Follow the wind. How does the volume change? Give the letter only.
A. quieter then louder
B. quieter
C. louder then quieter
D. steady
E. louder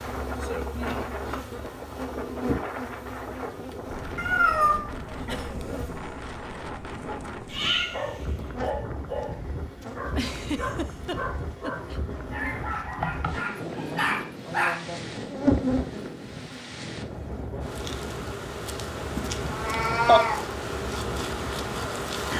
D.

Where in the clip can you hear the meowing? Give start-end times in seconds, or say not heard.
4.2-4.8, 7.5-8.2, 19.4-20.4.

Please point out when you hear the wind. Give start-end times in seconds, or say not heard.
0.0-22.3.